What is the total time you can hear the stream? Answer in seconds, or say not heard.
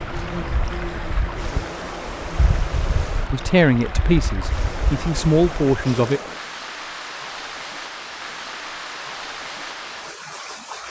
11 s.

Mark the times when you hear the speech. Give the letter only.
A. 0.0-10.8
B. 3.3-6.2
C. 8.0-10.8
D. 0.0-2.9
B.